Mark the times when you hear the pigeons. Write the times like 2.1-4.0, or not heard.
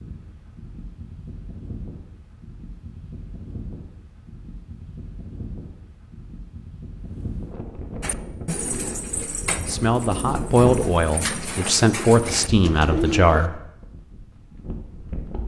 8.0-13.5.